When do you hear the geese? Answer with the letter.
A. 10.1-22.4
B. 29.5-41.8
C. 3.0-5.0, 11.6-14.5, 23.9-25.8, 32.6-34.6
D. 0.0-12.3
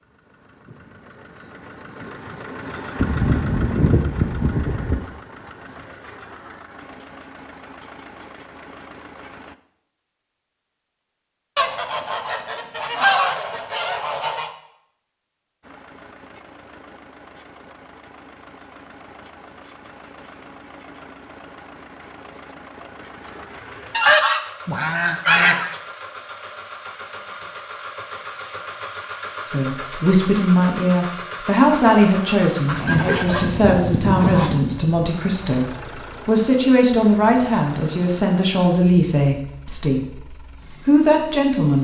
C.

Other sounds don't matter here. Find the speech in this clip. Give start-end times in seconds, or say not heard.
29.5-41.8.